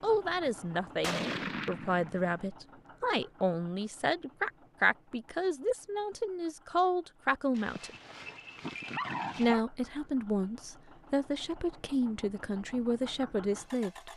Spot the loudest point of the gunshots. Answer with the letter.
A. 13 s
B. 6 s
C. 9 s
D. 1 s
D.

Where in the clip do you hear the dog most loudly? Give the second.
9 s.